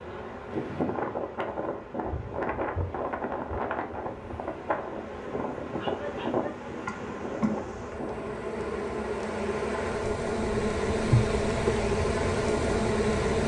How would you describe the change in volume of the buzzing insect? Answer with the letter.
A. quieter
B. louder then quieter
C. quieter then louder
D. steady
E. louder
E.